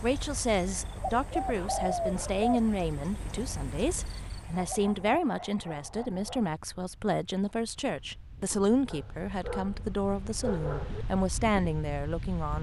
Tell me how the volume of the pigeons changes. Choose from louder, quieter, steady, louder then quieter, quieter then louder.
louder then quieter.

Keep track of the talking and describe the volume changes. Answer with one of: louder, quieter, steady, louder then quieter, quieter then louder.
steady.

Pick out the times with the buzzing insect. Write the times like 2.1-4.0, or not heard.
not heard.